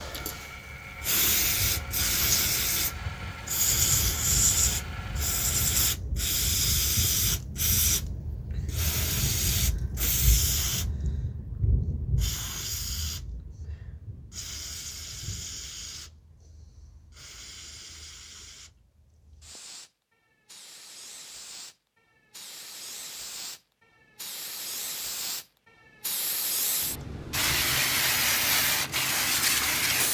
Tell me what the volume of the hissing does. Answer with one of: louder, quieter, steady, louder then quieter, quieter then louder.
quieter then louder.